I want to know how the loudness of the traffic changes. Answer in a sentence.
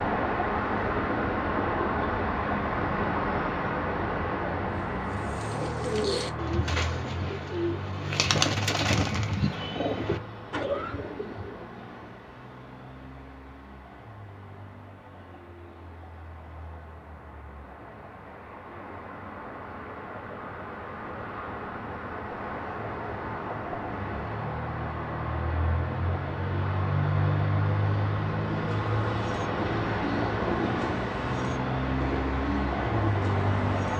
The loudness of the traffic goes down, then up.